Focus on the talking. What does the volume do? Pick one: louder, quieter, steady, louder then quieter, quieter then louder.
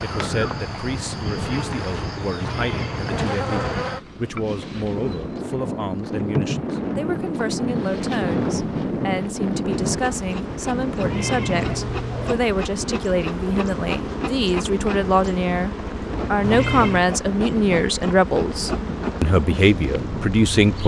louder.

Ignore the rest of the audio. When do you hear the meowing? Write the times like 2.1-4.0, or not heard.
2.4-3.8, 11.0-12.3, 16.4-17.1.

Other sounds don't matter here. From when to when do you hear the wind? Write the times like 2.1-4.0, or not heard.
0.0-20.8.